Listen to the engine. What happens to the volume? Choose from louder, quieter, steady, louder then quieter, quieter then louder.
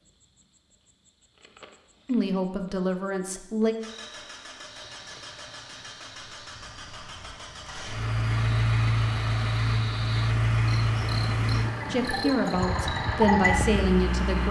louder.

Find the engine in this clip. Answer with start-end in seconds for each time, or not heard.
3.8-14.4.